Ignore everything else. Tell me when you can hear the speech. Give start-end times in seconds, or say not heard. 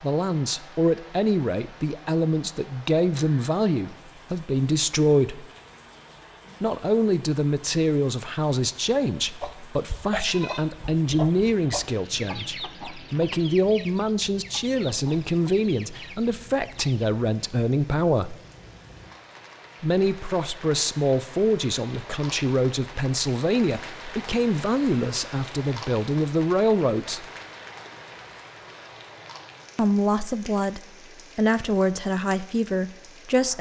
0.0-5.5, 6.6-18.4, 19.8-27.2, 29.8-33.5.